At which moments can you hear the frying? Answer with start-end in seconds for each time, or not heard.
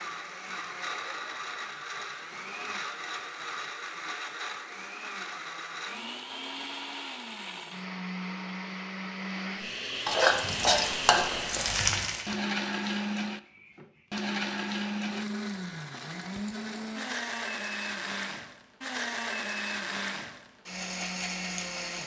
10.1-12.3.